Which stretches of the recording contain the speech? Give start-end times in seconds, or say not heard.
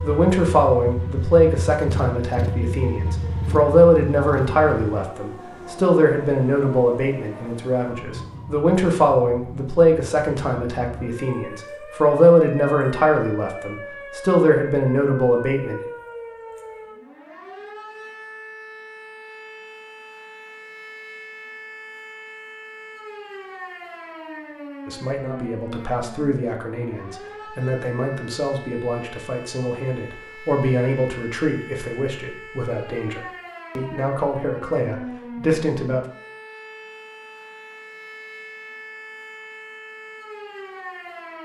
0.0-15.8, 24.9-36.0.